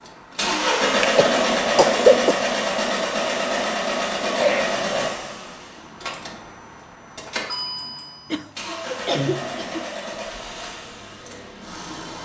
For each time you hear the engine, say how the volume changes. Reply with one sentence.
You can hear the engine from 0.0 to 12.2 s, getting quieter.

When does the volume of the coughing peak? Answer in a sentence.
The volume of the coughing peaks at 2 seconds.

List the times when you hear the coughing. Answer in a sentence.
The coughing can be heard from 0.9 to 2.4 s, from 4.3 to 5.2 s and from 8.3 to 10.2 s.